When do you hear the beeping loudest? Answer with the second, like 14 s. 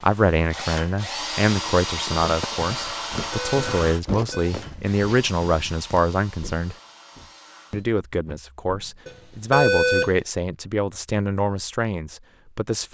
10 s.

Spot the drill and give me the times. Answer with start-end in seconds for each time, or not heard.
0.0-7.8.